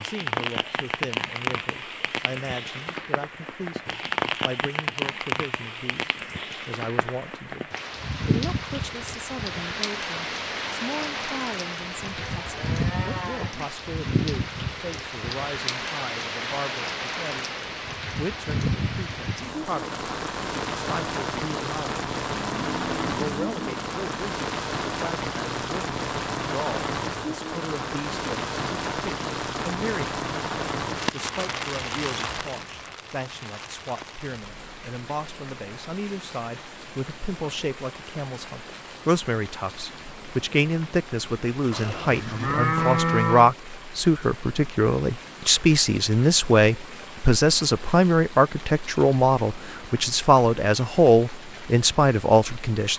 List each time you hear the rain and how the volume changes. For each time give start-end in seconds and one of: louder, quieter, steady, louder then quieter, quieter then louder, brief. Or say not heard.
0.0-52.9 quieter.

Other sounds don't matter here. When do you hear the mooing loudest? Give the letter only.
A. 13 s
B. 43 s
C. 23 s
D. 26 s
B.